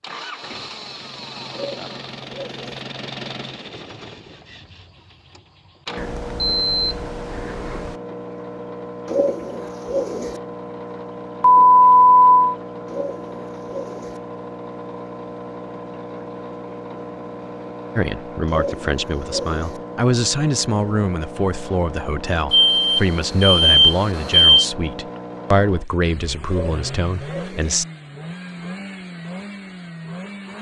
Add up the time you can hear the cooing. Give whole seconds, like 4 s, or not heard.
7 s.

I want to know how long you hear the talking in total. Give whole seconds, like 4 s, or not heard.
10 s.